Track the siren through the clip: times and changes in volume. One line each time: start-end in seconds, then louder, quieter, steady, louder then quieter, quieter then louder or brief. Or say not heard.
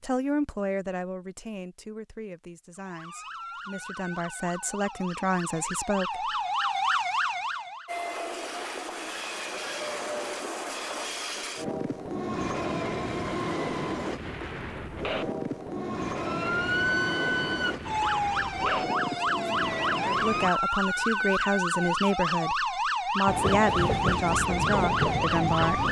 2.8-7.9 louder
16.1-25.8 steady.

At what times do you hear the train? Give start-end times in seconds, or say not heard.
7.8-20.6, 23.2-25.8.